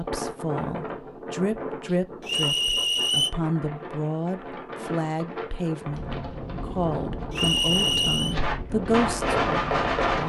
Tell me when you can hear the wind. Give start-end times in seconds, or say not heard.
0.0-10.2.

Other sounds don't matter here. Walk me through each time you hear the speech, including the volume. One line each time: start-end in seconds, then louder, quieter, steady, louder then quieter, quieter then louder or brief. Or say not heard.
0.0-10.2 steady.